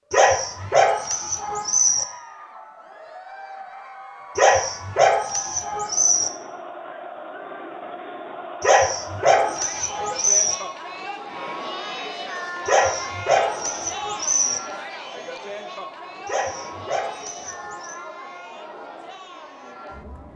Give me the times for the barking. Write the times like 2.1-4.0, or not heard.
0.1-2.0, 4.3-6.3, 8.6-10.6, 12.7-14.6, 16.2-17.9.